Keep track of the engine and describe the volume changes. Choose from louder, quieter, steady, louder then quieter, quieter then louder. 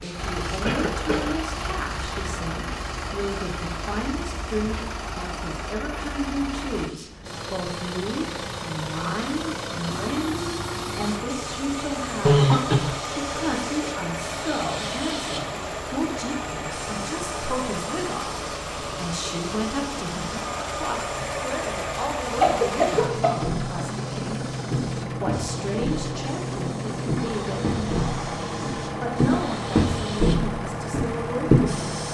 steady.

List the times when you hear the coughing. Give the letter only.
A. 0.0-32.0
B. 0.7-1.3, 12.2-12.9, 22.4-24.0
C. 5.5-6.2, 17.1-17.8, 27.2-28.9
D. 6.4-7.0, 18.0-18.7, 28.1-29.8
B.